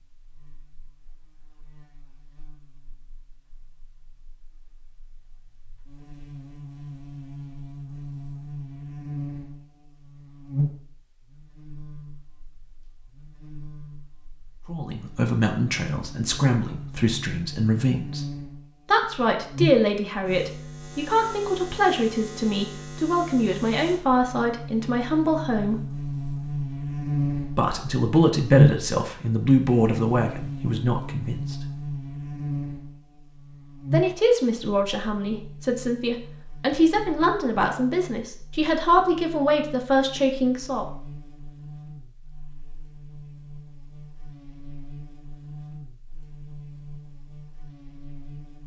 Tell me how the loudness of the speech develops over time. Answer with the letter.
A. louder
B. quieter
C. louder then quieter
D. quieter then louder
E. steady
E.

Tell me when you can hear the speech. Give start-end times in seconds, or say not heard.
14.7-18.3, 18.9-25.9, 27.5-31.6, 33.9-40.9.